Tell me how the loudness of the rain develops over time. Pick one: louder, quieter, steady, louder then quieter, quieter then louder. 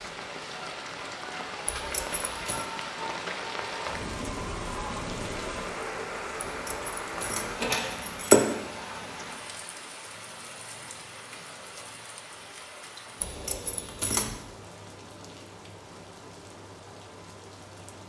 quieter.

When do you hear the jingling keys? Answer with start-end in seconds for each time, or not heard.
1.6-2.6, 6.7-8.4, 13.2-14.3.